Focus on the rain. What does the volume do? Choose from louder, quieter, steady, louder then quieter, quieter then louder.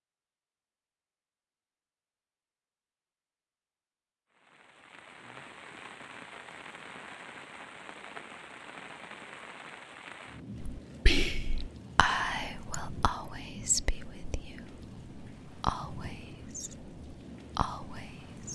steady.